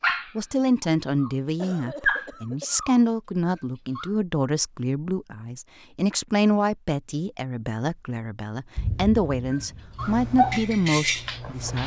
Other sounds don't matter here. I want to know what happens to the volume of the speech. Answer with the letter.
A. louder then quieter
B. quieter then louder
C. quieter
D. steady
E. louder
D.